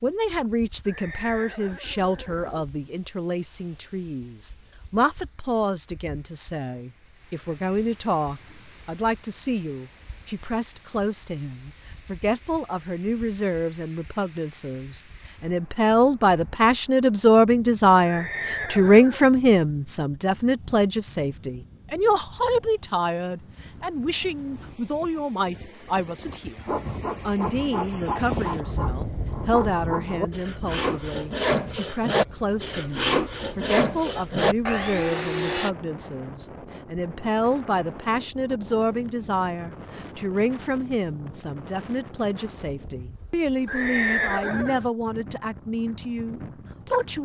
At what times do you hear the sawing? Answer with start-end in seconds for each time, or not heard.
26.6-35.7.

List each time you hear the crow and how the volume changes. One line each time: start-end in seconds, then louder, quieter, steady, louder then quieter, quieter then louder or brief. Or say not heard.
not heard.